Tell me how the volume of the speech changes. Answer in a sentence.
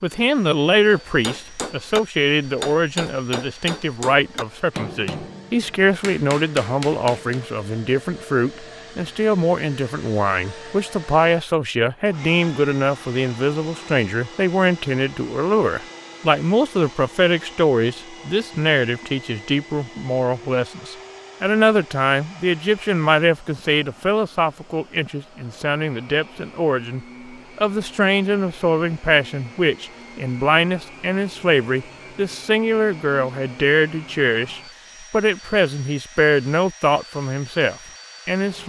The loudness of the speech stays about the same.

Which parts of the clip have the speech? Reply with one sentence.
The speech can be heard from 0.0 to 38.6 s.